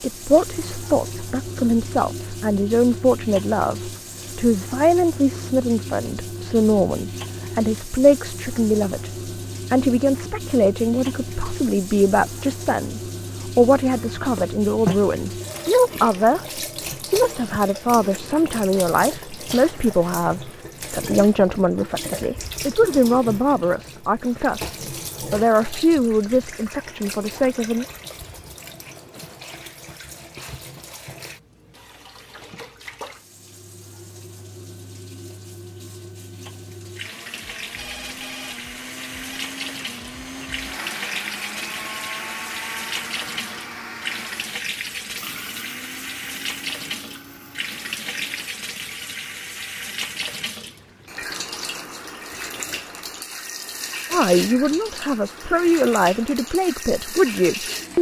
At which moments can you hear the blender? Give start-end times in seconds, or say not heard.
37.0-48.5.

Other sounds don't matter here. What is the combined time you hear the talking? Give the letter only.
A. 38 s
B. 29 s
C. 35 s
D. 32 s
D.